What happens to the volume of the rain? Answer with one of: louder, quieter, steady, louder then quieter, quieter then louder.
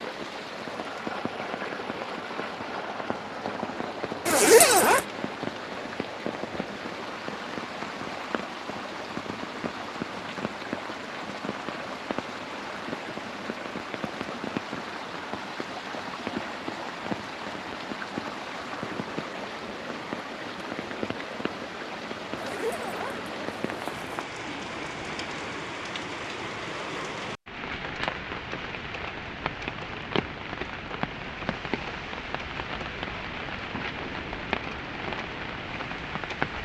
steady.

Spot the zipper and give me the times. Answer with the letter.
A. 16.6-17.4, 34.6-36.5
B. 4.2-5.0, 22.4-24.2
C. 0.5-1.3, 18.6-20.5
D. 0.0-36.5
B.